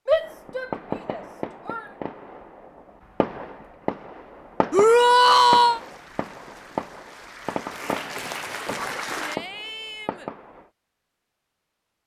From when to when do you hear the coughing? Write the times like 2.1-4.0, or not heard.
not heard.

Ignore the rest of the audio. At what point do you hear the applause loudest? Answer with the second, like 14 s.
9 s.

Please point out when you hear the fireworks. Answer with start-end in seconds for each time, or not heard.
0.2-10.7.